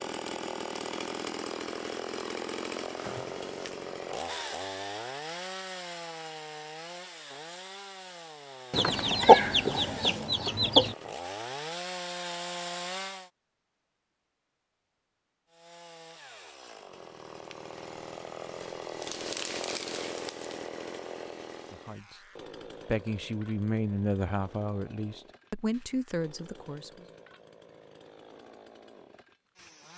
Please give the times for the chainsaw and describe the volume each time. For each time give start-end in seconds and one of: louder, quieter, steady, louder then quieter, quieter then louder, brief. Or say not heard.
0.0-13.3 quieter then louder
15.4-29.9 louder then quieter.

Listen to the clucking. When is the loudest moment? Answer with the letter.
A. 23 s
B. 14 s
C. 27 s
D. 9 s
D.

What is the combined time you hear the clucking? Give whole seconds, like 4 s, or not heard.
2 s.